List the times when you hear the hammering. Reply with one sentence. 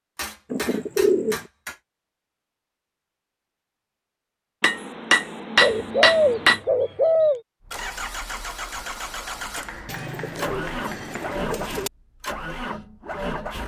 You can hear the hammering from 0.1 to 1.8 s, from 4.6 to 6.6 s and from 9.6 to 11.4 s.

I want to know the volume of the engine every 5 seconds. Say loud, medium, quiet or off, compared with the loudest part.
off, loud, loud.